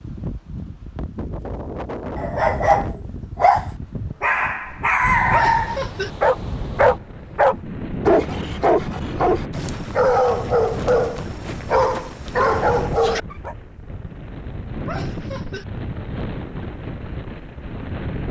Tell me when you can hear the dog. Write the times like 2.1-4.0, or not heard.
2.1-13.6.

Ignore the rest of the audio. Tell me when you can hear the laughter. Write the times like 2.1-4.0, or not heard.
5.3-6.1, 14.8-15.7.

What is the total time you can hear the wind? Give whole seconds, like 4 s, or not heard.
18 s.